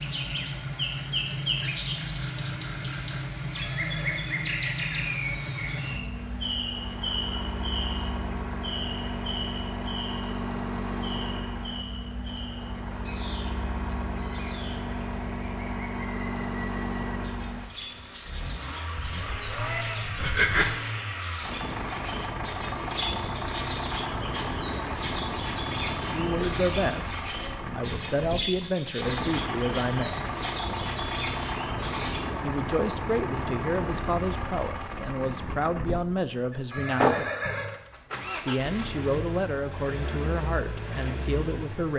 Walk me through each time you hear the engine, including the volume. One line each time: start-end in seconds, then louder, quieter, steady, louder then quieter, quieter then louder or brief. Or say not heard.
0.0-41.9 steady.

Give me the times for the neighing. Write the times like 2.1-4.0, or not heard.
3.5-4.2, 36.7-37.8.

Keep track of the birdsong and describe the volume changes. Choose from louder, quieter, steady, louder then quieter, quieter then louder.
quieter then louder.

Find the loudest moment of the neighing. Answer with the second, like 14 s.
37 s.